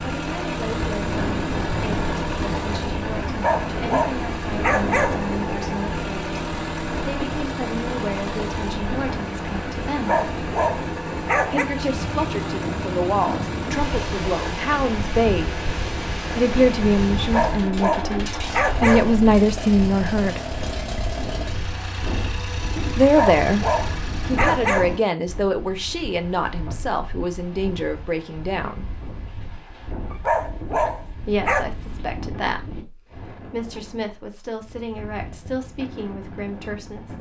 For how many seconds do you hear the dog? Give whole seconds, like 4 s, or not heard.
9 s.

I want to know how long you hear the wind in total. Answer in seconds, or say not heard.
37 s.